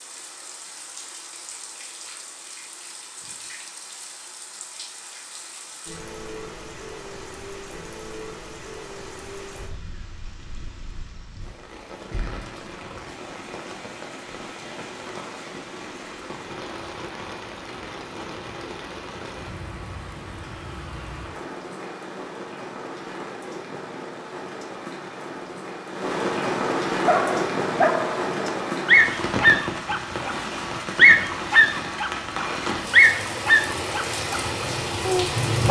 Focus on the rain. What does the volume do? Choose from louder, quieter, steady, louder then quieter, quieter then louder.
louder.